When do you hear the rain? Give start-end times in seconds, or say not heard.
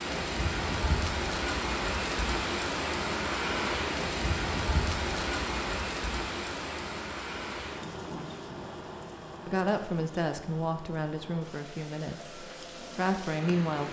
0.0-13.8.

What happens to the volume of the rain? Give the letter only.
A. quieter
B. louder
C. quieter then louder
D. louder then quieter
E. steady
A.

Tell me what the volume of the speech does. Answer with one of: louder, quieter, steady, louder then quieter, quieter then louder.
quieter then louder.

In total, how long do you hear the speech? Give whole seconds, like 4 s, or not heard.
4 s.